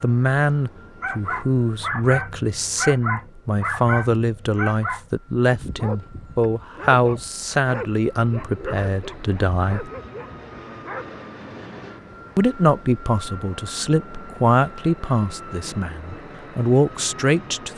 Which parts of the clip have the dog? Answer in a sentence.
You can hear the dog from 1.0 to 11.2 s.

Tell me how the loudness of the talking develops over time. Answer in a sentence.
The volume of the talking stays about the same.